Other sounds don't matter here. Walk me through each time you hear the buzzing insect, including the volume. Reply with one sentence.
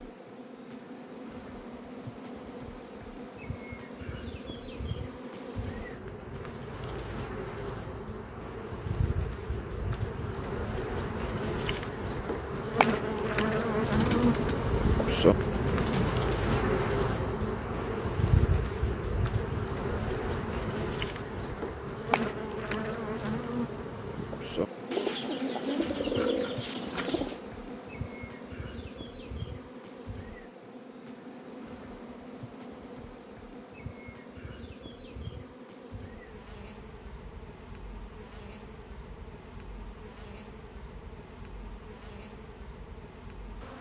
The buzzing insect can be heard from 0.0 to 43.7 s, getting louder then quieter.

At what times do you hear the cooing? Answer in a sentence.
The cooing can be heard from 13.8 to 16.2 s and from 24.9 to 27.4 s.